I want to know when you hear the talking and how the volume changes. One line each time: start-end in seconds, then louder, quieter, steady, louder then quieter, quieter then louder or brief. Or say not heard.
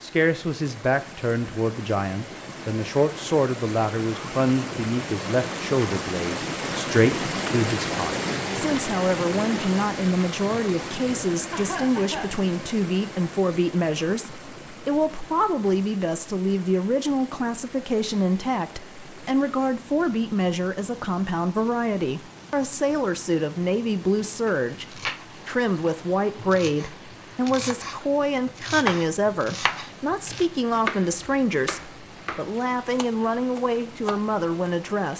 0.0-35.1 steady.